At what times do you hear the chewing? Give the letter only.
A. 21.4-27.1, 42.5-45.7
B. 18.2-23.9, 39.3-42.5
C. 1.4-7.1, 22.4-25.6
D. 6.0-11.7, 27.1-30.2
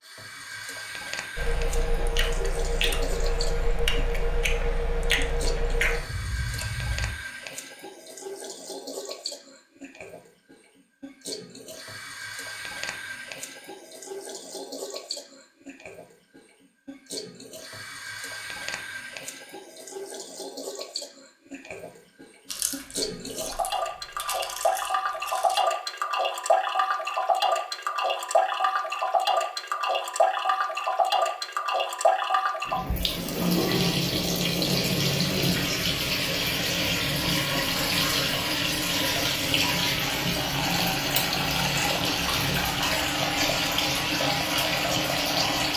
C.